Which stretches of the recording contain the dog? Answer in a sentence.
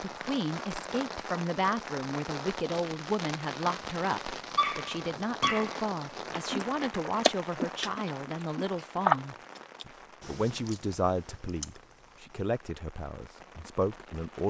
You can hear the dog from 4.5 to 5.8 s.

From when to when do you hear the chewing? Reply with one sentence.
The chewing can be heard from 6.3 to 12.6 s.